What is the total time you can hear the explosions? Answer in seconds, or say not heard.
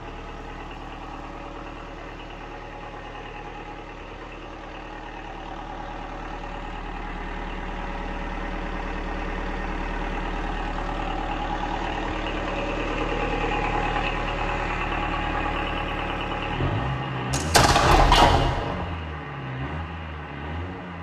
2 s.